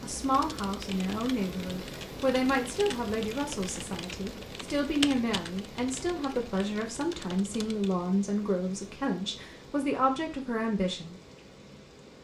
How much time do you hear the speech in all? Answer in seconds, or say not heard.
11 s.